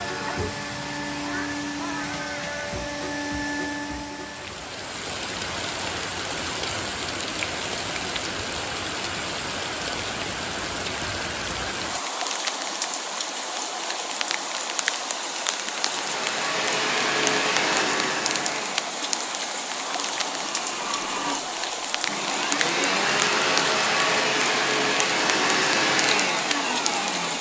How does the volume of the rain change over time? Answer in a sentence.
The volume of the rain stays about the same.